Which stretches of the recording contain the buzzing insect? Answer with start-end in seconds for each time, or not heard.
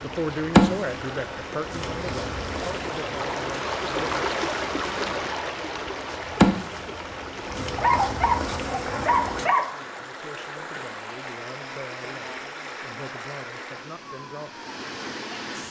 0.0-9.5.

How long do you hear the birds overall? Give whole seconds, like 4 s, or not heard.
not heard.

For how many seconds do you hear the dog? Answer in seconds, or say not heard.
2 s.